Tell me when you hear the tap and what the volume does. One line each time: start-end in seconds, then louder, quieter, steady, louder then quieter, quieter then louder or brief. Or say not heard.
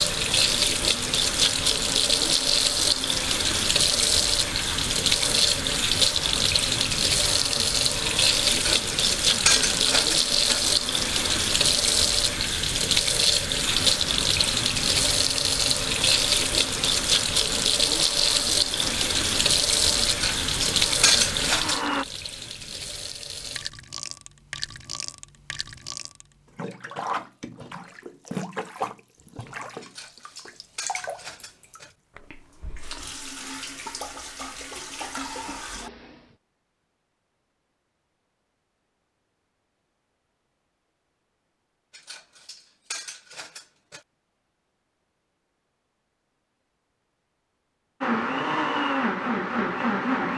0.0-36.4 quieter.